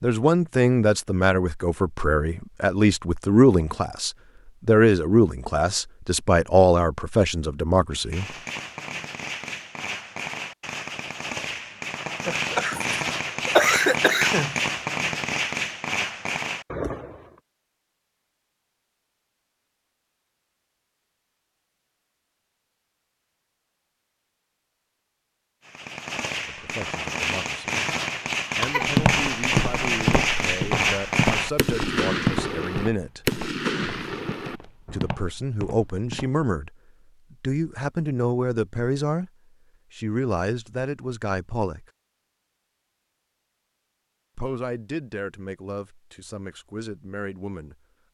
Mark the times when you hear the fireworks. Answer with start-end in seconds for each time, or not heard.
7.9-17.4, 25.6-35.1.